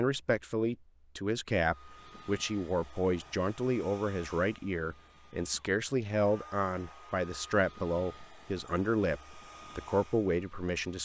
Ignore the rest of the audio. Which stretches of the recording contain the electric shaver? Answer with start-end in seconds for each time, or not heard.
not heard.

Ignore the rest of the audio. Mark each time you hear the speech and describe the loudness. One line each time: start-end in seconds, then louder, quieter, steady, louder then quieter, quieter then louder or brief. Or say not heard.
0.0-11.0 steady.